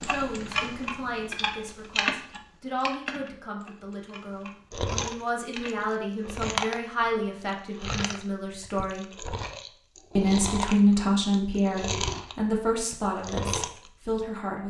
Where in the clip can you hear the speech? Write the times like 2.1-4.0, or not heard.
0.0-9.1, 10.2-14.6.